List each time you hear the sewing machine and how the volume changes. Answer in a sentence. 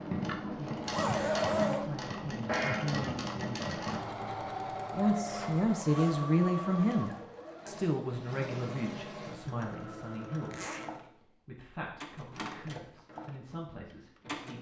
The sewing machine can be heard from 0.0 to 14.5 s, getting quieter.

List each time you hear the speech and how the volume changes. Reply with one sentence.
The speech can be heard briefly from 0.2 to 0.9 s; briefly from 1.7 to 3.6 s; and from 4.9 to 14.5 s, getting quieter.